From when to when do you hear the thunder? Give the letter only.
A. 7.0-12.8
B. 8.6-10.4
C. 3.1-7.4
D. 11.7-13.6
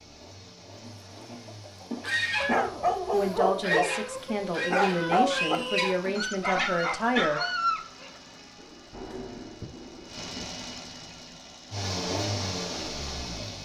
B.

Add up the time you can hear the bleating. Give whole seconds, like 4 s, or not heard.
not heard.